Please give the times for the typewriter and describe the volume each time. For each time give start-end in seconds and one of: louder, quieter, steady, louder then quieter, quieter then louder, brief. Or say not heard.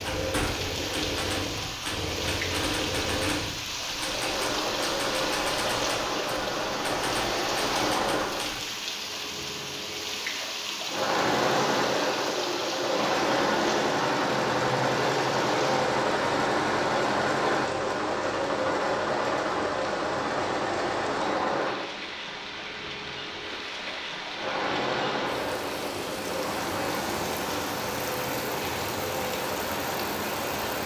0.0-8.7 steady.